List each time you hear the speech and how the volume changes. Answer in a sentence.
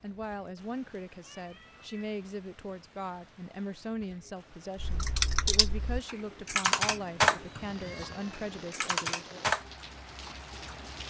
The speech can be heard from 0.0 to 9.4 s, at a steady volume.